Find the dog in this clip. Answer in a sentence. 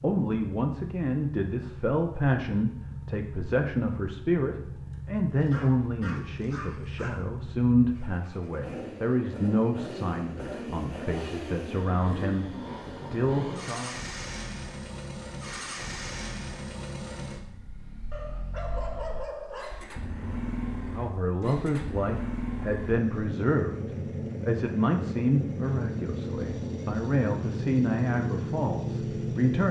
The dog can be heard from 5.4 to 7.2 s and from 18.1 to 19.9 s.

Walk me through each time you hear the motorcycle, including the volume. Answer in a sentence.
The motorcycle can be heard from 0.0 to 29.6 s, getting louder.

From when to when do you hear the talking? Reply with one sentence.
You can hear the talking from 0.0 to 13.9 s and from 20.9 to 29.6 s.